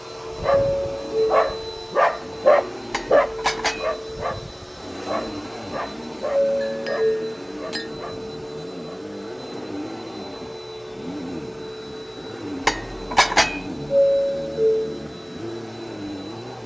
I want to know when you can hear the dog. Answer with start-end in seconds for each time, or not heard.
0.3-9.0.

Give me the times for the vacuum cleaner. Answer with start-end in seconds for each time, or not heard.
0.0-16.6.